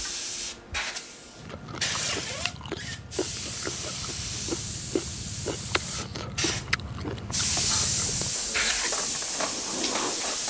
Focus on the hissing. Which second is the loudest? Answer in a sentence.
The volume of the hissing peaks at 8 seconds.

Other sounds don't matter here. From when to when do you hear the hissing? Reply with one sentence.
You can hear the hissing from 0.0 to 10.4 s.